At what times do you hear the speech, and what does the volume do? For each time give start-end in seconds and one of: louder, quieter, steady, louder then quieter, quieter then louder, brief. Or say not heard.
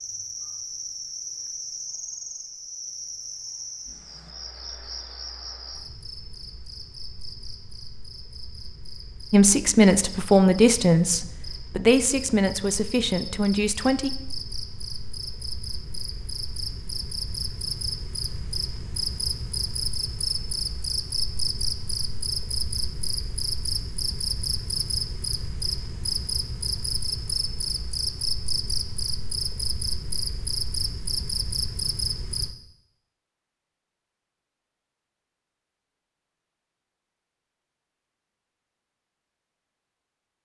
9.3-14.1 quieter.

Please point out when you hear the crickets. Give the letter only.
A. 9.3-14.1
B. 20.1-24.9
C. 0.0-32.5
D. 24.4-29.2
C.